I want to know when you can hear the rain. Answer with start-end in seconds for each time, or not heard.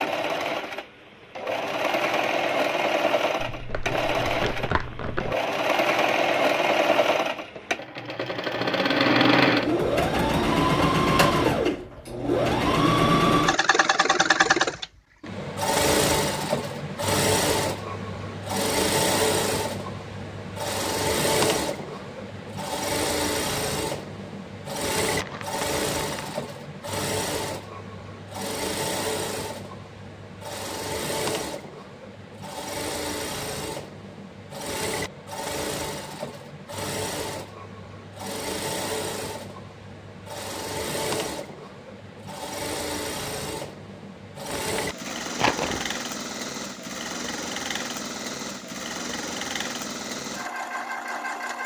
not heard.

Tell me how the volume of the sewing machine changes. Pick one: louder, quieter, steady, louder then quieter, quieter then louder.
quieter.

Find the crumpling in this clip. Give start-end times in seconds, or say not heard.
3.4-5.3, 25.0-26.4, 44.5-46.0.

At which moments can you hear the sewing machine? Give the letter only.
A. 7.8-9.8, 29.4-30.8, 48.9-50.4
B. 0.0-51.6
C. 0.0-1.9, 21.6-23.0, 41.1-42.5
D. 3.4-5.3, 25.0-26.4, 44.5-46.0
B.